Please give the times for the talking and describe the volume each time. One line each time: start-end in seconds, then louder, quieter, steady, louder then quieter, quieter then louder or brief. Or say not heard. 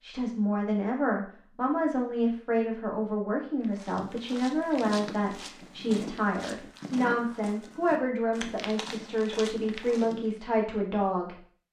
0.0-11.3 steady.